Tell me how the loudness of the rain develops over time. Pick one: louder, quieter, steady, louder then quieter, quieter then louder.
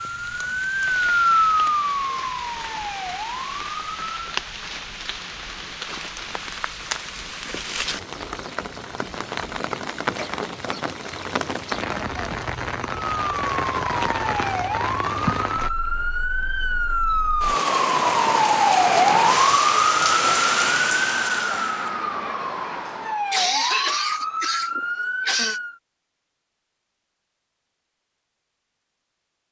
louder.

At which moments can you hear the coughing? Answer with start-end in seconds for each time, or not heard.
10.0-10.8, 22.9-25.6.